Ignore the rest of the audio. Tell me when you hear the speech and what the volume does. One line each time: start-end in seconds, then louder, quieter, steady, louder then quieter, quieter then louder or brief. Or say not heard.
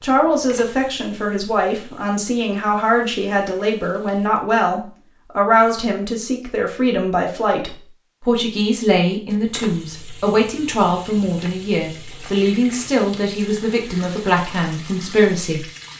0.0-15.7 steady.